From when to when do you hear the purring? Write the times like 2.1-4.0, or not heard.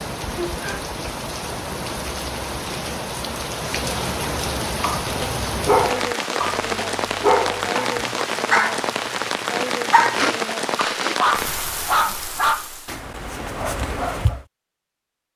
not heard.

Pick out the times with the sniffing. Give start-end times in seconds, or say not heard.
10.2-11.2.